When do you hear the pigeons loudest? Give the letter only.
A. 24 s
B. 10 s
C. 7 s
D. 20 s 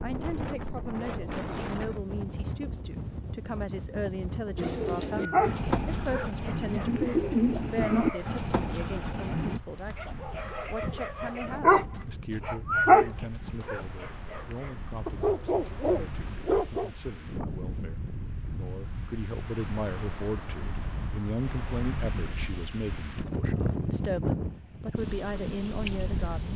C.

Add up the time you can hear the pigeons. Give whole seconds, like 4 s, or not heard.
5 s.